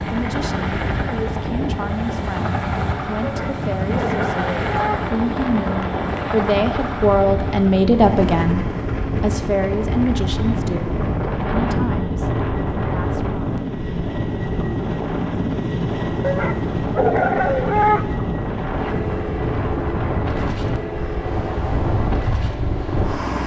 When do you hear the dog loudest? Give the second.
18 s.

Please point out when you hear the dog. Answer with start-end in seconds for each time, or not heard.
3.2-5.0, 16.2-18.1.